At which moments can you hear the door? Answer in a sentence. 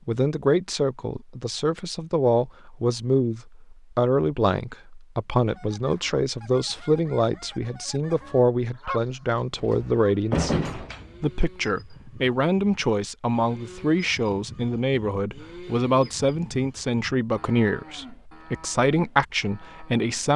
The door can be heard from 9.6 to 11.3 s.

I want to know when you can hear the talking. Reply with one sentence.
The talking can be heard from 0.1 to 20.3 s.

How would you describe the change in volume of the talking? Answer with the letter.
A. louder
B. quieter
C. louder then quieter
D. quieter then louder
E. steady
E.